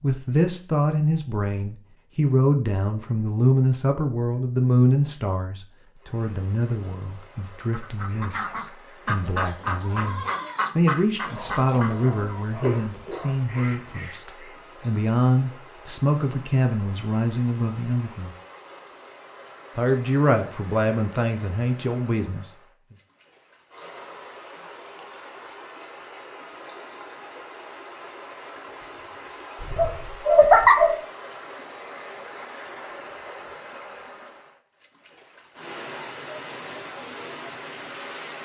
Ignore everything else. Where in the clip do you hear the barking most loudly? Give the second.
31 s.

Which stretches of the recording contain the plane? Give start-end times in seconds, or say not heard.
not heard.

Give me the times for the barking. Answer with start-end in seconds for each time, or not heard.
11.2-13.8, 29.6-31.0.